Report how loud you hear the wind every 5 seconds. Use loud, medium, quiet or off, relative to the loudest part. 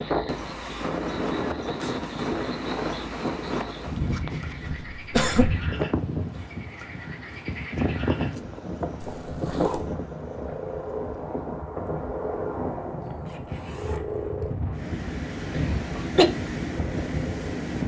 loud, loud, medium, loud.